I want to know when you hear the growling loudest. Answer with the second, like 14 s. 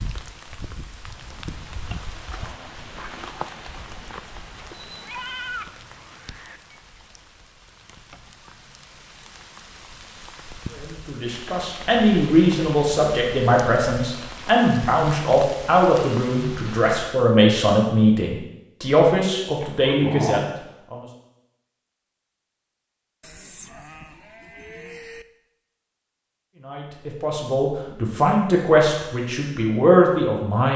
20 s.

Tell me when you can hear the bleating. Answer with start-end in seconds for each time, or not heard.
4.7-6.6, 23.2-25.2.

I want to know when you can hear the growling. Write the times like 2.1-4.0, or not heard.
2.3-3.5, 19.6-20.5.